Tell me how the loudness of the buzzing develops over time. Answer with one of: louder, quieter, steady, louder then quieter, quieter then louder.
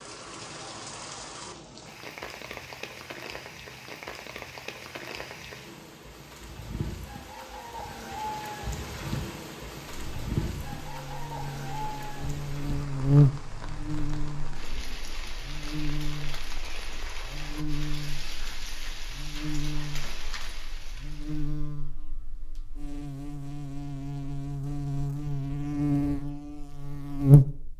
quieter then louder.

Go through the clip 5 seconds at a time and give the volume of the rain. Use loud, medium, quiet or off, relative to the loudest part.
loud, loud, loud, loud, medium, off.